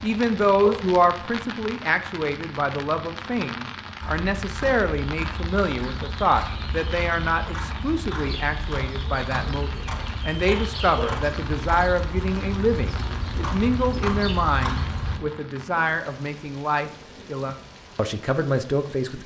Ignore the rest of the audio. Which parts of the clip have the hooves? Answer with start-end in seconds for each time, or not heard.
4.0-15.2.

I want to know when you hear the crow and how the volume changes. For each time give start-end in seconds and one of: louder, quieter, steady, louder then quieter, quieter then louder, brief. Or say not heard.
not heard.